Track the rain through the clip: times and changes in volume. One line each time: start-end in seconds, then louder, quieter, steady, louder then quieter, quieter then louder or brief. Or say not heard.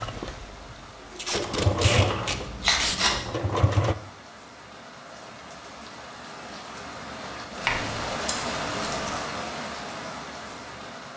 0.0-11.1 louder.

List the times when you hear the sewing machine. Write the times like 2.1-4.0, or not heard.
0.0-4.0.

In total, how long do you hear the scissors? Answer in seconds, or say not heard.
3 s.